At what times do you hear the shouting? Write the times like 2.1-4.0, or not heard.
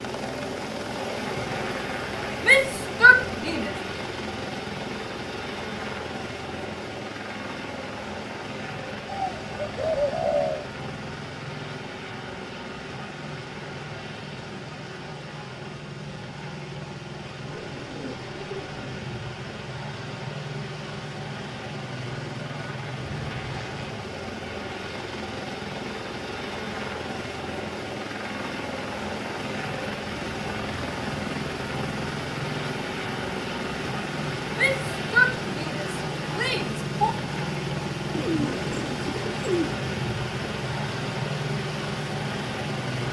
2.4-3.7, 34.5-37.1.